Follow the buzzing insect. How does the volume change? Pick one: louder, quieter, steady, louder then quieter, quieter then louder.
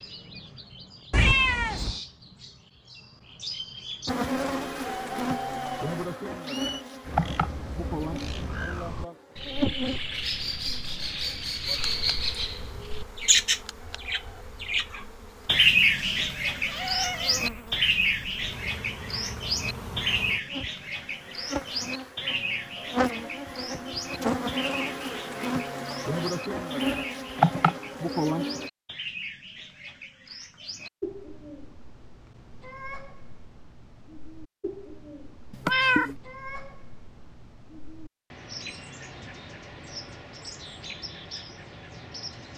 quieter then louder.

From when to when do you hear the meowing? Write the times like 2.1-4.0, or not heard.
1.1-1.9, 15.9-17.6, 35.5-36.1.